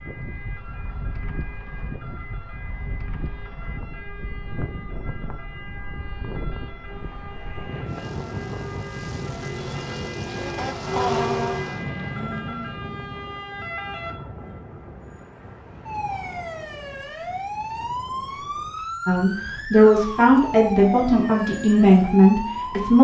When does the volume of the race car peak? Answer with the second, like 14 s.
11 s.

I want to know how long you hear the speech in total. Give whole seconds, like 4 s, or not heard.
4 s.